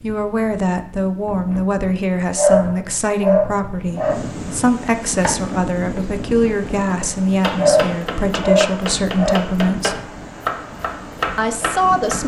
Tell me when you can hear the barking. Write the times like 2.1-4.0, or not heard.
2.4-4.2, 7.5-9.3.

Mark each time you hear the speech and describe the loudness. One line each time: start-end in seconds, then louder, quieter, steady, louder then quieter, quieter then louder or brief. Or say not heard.
0.0-9.9 steady
11.3-12.2 brief.